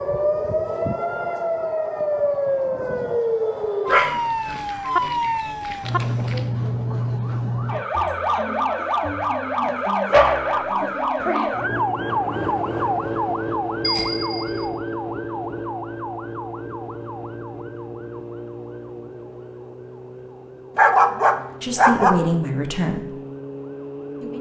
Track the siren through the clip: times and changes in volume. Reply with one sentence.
The siren can be heard from 0.0 to 24.3 s, getting quieter.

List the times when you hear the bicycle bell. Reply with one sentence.
You can hear the bicycle bell from 13.8 to 14.7 s.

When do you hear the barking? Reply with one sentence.
The barking can be heard from 3.9 to 6.4 s, from 10.1 to 11.5 s and from 20.8 to 22.3 s.